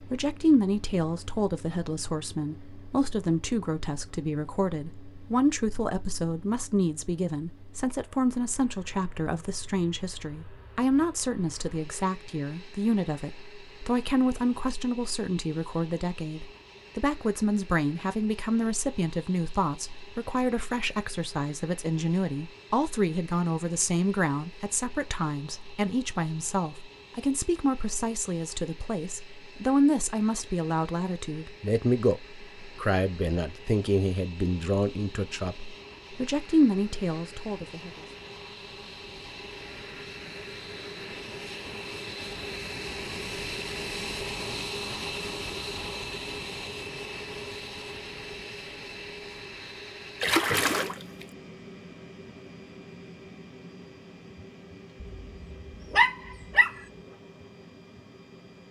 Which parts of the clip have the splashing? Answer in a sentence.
The splashing can be heard from 50.2 to 51.2 s.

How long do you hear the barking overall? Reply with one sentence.
The barking can be heard for 2 seconds in total.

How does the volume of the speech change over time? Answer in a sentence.
The loudness of the speech stays about the same.